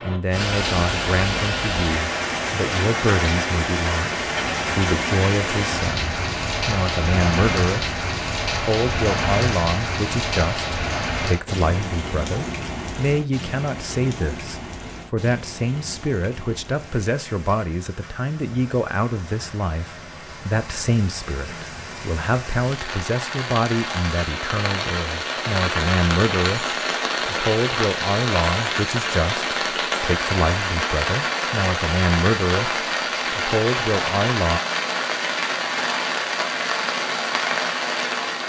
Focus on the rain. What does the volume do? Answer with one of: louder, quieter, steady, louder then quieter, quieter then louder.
quieter then louder.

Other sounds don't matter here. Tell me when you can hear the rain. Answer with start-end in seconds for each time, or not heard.
0.0-38.4.